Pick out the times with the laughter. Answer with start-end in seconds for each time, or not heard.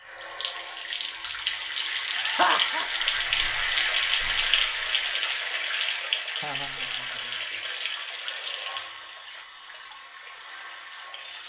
2.1-2.9, 6.3-7.5.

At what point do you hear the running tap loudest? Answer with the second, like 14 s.
4 s.